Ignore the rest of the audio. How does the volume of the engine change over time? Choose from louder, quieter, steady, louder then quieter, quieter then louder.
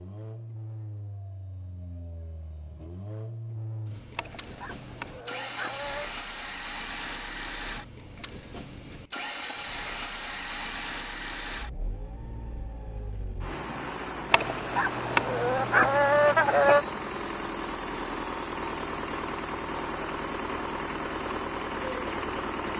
louder.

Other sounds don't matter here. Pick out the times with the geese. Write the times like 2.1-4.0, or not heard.
4.2-6.1, 14.3-16.9.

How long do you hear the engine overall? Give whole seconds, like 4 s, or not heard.
23 s.